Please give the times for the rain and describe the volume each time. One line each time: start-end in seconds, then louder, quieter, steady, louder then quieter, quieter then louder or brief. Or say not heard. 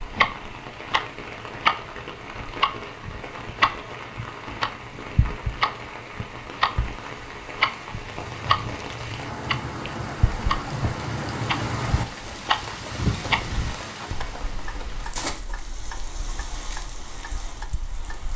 0.0-18.3 louder then quieter.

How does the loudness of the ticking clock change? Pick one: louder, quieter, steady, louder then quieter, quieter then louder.
quieter.